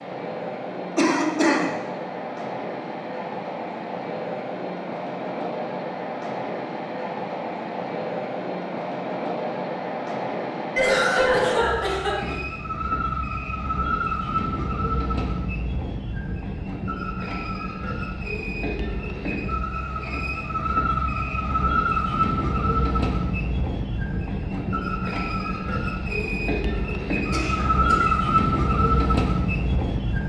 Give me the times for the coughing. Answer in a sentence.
The coughing can be heard from 0.9 to 1.7 s, from 10.8 to 12.3 s and from 27.3 to 28.1 s.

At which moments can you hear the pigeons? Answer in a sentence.
You can't hear the pigeons here.